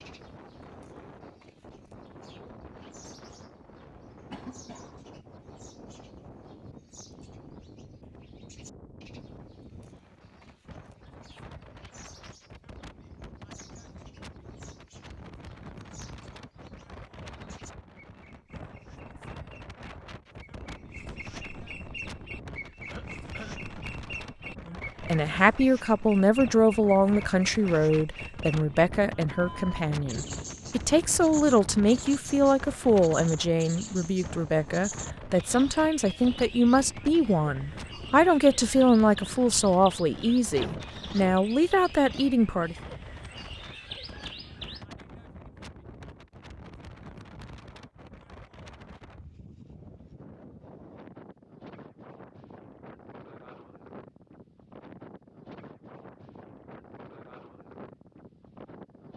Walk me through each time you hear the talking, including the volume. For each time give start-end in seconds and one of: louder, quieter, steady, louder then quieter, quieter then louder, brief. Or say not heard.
24.7-42.8 steady.